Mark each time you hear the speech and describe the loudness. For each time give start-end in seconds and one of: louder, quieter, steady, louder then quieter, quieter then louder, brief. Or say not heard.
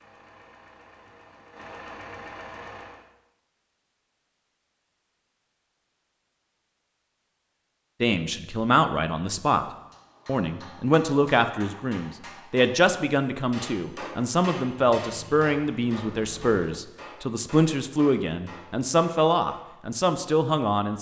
8.0-9.7 brief
10.2-20.9 steady.